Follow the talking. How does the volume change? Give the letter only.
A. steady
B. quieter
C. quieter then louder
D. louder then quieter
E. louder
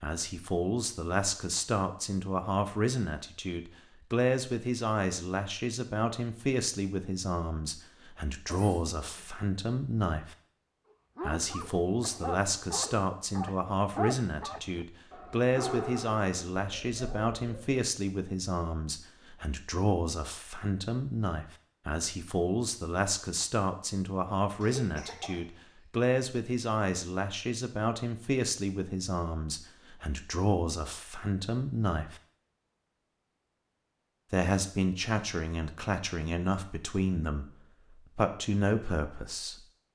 A.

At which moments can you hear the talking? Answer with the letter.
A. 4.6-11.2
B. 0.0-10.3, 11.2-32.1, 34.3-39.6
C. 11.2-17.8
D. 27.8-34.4
B.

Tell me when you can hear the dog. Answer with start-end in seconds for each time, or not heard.
11.2-17.8.